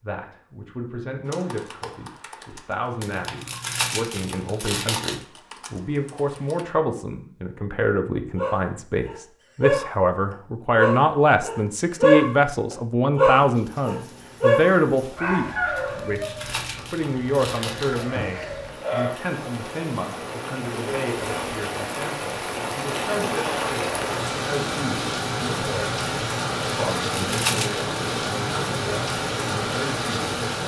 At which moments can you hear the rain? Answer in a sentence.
The rain can be heard from 13.4 to 30.6 s.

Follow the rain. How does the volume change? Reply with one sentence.
The volume of the rain goes up.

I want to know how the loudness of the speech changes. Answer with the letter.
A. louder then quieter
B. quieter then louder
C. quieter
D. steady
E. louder
A.